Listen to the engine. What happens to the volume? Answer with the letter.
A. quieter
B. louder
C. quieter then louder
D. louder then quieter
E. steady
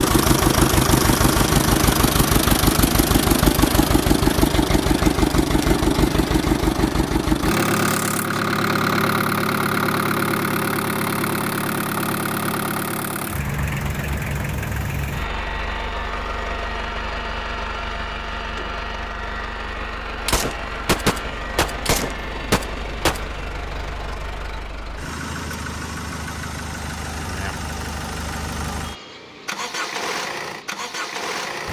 A.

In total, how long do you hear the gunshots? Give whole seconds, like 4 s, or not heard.
3 s.